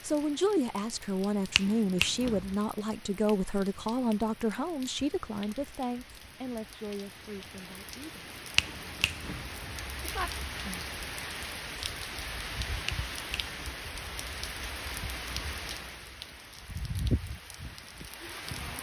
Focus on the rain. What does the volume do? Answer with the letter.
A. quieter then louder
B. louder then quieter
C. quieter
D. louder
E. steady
D.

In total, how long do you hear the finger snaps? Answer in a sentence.
The finger snaps can be heard for 3 seconds in total.